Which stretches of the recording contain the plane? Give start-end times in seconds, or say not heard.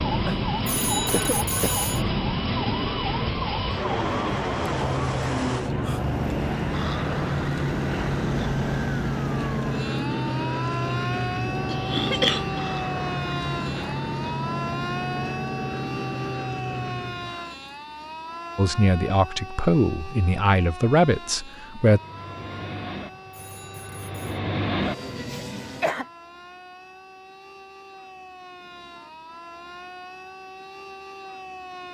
0.0-17.5, 21.8-25.9.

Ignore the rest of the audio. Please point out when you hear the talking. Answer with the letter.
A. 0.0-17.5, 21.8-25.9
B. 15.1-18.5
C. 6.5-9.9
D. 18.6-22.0
D.